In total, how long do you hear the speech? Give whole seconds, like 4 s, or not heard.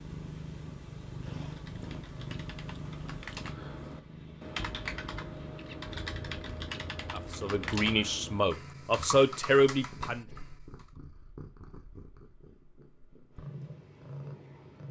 3 s.